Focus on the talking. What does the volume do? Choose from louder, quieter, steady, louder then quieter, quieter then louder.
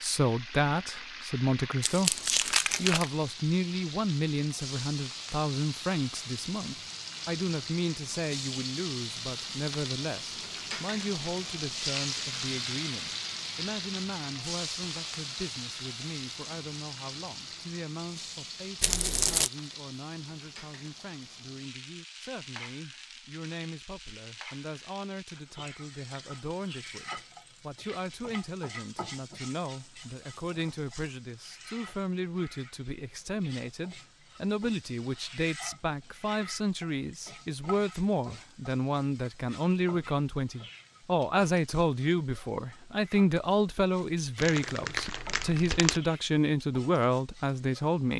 quieter then louder.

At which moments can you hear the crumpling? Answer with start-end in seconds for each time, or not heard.
1.8-3.1, 18.8-19.5, 44.4-46.0.